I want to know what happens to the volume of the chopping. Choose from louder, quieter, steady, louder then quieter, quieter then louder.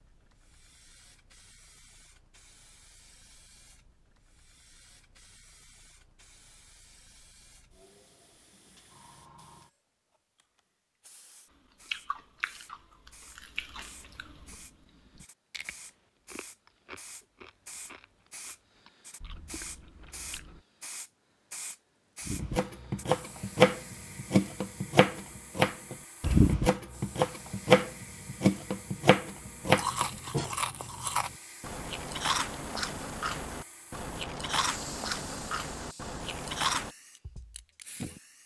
steady.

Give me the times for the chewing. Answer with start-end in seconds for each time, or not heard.
11.8-20.6, 29.6-36.9.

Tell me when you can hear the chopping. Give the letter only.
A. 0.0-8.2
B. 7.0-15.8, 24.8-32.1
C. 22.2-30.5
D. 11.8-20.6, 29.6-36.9
C.